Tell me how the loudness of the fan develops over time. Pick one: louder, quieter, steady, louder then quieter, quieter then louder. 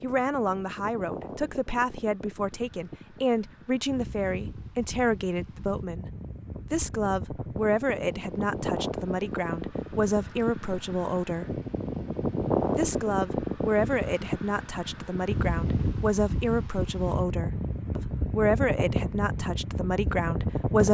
louder.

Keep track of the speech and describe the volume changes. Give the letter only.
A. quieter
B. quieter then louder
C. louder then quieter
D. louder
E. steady
E.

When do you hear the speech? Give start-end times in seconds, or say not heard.
0.0-6.0, 6.7-11.6, 12.8-20.8.